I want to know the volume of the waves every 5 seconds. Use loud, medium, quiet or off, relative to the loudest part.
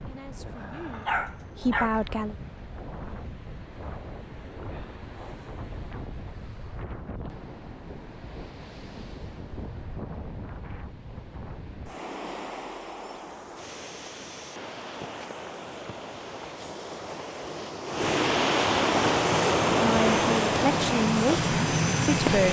quiet, quiet, quiet, loud, loud.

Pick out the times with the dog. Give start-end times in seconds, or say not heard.
0.9-2.0.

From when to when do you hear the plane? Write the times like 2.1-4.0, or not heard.
19.0-22.4.